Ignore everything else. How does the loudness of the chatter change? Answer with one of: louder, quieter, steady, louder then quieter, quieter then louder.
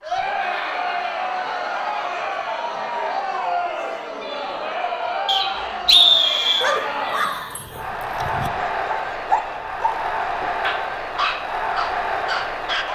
steady.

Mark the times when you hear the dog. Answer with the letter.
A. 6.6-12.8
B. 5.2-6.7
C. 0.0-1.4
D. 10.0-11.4
A.